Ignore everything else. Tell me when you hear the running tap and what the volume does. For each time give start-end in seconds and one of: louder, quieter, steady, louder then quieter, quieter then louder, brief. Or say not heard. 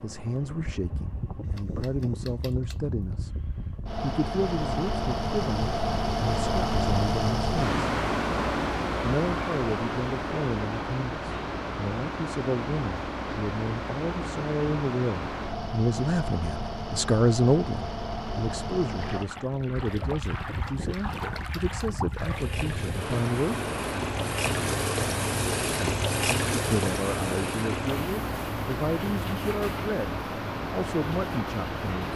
18.9-31.9 louder then quieter.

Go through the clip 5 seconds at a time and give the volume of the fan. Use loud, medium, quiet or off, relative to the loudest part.
medium, loud, medium, medium, medium, medium, medium.